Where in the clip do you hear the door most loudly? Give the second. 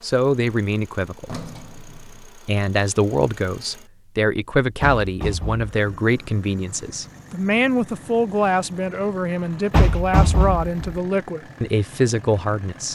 10 s.